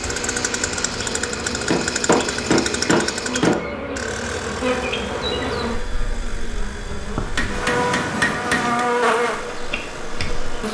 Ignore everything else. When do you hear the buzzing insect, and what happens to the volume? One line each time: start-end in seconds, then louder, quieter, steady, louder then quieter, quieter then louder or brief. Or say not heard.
0.0-10.6 louder.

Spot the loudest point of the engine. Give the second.
2 s.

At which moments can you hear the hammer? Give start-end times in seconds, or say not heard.
1.7-3.6, 7.3-8.8.